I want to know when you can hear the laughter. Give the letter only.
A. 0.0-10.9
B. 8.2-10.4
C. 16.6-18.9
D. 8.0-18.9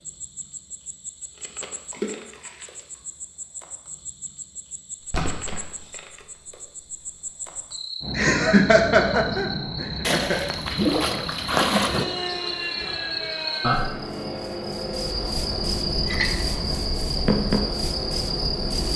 B.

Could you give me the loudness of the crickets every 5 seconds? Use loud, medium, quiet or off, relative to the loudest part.
quiet, medium, loud, loud.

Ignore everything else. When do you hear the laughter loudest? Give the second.
9 s.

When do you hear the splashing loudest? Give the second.
12 s.